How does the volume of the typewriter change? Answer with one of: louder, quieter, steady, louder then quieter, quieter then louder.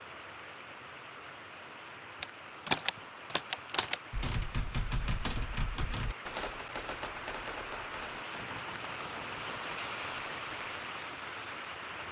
quieter.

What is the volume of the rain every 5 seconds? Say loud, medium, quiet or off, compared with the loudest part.
medium, loud, loud.